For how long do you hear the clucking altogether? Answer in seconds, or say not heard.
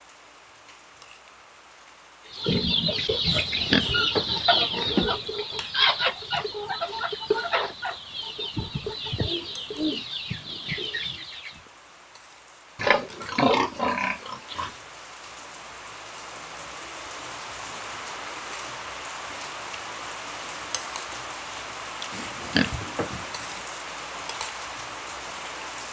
9 s.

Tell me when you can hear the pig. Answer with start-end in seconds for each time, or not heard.
3.3-5.2, 12.8-14.8, 22.1-23.4.